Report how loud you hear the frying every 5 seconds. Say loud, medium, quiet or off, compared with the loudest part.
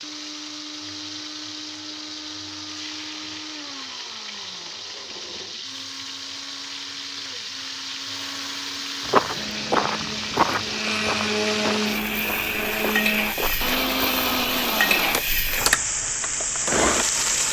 medium, medium, loud, loud.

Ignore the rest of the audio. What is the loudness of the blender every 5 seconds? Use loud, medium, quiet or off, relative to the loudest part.
quiet, quiet, loud, loud.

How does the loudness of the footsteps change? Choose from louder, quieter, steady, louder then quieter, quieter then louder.
quieter.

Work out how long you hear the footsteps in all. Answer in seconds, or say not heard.
5 s.